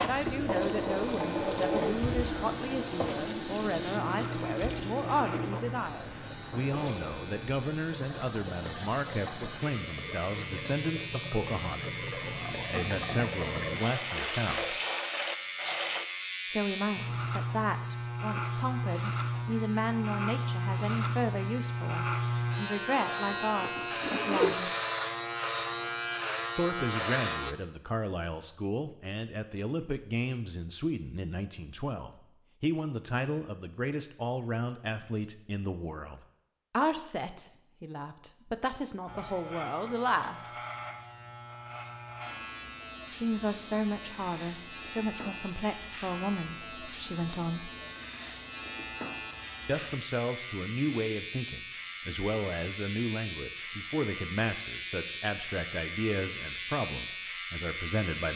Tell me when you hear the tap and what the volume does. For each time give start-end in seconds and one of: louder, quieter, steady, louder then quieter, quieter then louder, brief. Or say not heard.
0.0-16.1 quieter then louder.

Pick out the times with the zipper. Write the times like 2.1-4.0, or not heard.
23.2-24.6.